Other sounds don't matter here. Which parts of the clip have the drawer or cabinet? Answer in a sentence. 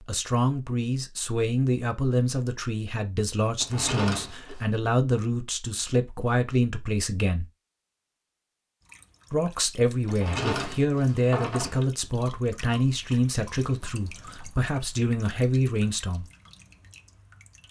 You can hear the drawer or cabinet from 3.6 to 4.7 s and from 10.1 to 11.8 s.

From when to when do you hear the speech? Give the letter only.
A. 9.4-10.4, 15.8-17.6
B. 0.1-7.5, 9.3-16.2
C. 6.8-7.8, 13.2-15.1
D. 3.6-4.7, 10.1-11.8
B.